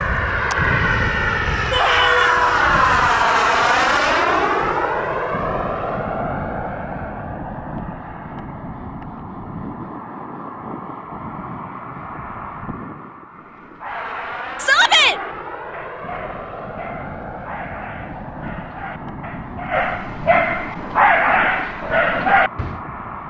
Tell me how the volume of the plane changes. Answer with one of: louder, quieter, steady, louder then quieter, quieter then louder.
quieter.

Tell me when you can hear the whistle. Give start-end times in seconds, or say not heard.
not heard.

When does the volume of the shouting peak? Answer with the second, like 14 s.
15 s.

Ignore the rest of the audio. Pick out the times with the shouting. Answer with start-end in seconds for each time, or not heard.
1.7-2.6, 14.6-15.2.